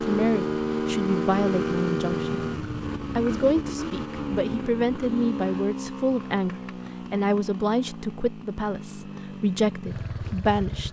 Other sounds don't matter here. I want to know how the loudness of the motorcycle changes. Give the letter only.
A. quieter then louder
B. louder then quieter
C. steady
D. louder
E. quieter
E.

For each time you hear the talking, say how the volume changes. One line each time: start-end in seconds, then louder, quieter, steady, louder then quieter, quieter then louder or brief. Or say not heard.
0.0-10.8 steady.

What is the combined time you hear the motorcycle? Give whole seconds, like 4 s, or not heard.
11 s.